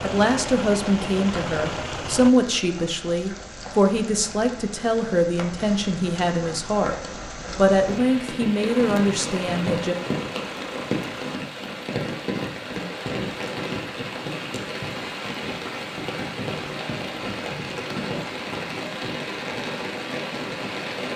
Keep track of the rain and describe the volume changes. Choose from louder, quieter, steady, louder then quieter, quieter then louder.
louder.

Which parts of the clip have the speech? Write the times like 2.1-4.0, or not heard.
0.0-7.0, 7.5-9.9.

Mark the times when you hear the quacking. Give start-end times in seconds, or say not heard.
not heard.